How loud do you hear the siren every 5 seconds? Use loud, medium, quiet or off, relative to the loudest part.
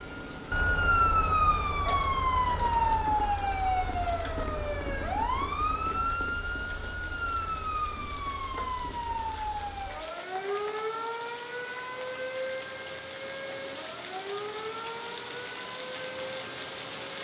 loud, medium, medium, quiet.